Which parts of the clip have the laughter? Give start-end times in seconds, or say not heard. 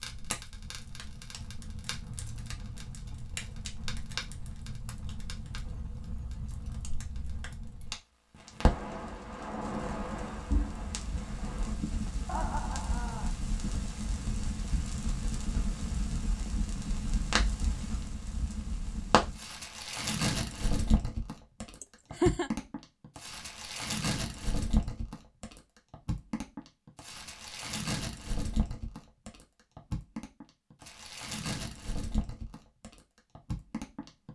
12.2-13.3, 21.8-22.5.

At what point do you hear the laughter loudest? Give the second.
22 s.